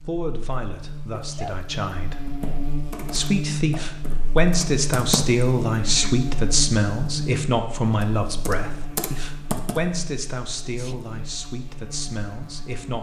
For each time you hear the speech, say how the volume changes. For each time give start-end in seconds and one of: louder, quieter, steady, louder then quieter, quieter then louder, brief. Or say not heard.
0.0-12.9 louder then quieter.